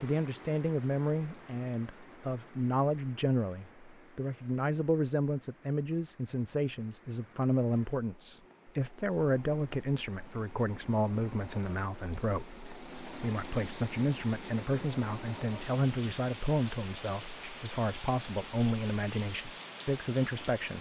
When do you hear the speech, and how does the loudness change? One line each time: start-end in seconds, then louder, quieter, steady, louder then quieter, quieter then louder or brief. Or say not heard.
0.0-20.7 steady.